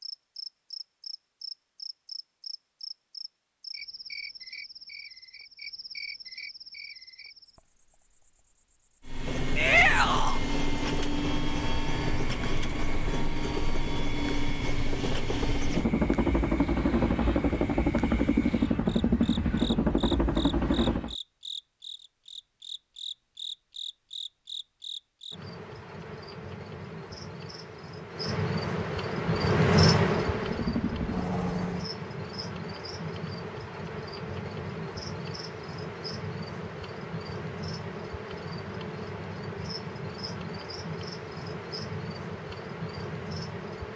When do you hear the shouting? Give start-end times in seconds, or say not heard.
9.6-10.4.